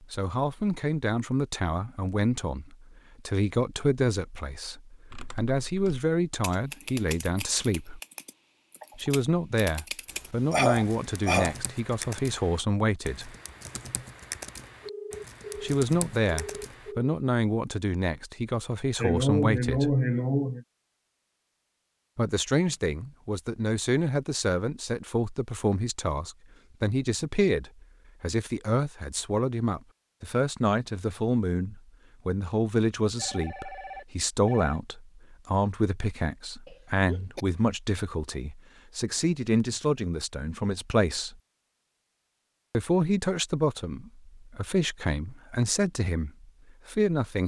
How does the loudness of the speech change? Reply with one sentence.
The loudness of the speech stays about the same.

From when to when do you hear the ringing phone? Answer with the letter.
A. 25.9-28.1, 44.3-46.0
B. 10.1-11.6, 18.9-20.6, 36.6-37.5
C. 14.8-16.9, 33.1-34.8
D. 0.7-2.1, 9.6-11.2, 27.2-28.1
C.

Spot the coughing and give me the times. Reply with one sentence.
The coughing can be heard from 10.1 to 11.6 s, from 18.9 to 20.6 s and from 36.6 to 37.5 s.